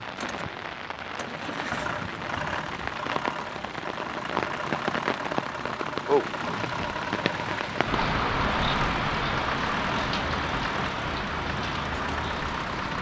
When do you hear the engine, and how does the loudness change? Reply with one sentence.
The engine can be heard from 0.1 to 12.9 s, at a steady volume.